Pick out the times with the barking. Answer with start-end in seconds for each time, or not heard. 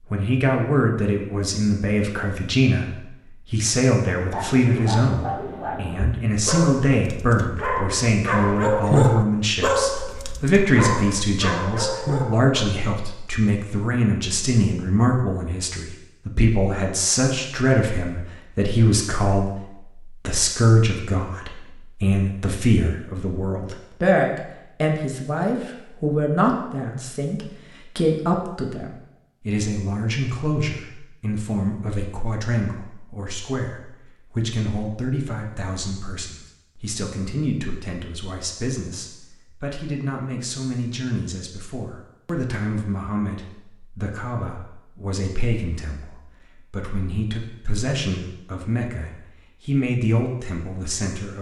4.1-12.8.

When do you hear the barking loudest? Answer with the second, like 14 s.
9 s.